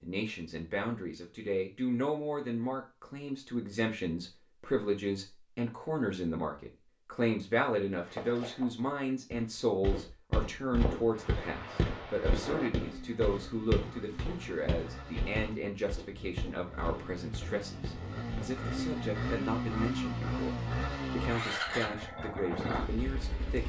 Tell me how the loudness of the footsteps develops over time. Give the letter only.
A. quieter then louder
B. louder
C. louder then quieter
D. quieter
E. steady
C.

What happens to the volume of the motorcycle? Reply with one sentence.
The loudness of the motorcycle goes up.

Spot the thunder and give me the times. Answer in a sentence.
You can hear the thunder from 11.1 to 12.7 s.